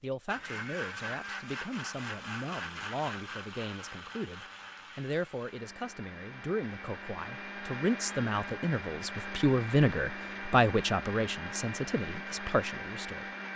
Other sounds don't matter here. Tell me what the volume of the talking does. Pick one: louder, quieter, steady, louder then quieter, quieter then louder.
louder.